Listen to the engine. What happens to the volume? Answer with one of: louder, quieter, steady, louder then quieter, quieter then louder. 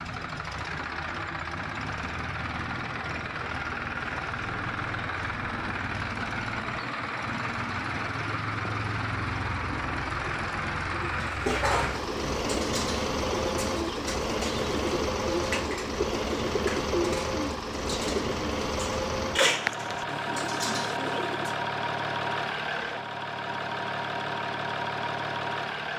steady.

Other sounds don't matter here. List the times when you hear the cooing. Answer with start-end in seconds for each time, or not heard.
10.9-21.6.